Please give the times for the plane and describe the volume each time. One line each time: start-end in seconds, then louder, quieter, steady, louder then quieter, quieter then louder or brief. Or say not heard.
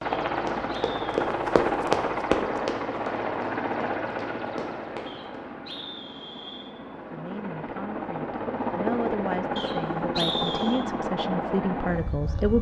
0.0-12.5 quieter then louder.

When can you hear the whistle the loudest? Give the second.
10 s.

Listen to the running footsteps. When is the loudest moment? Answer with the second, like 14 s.
2 s.